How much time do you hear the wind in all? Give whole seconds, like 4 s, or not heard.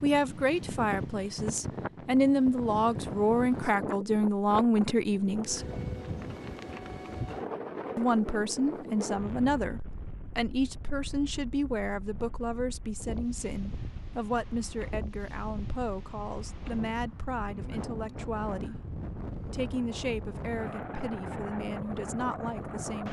23 s.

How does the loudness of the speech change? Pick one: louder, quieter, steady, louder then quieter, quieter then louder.
quieter.